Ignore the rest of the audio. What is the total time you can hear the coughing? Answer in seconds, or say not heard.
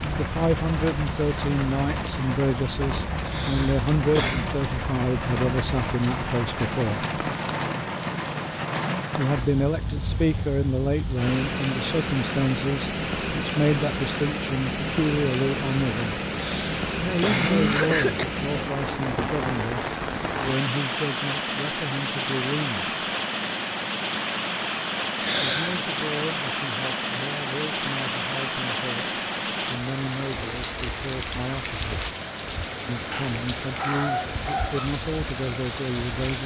4 s.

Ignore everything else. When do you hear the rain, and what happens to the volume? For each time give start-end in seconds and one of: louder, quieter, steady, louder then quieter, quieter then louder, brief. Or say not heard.
0.0-36.4 steady.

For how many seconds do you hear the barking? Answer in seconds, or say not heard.
2 s.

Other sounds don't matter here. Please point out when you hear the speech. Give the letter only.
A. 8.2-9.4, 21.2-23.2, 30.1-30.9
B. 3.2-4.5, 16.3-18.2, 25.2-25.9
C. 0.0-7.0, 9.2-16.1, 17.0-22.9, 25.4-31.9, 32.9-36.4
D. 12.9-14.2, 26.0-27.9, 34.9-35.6
C.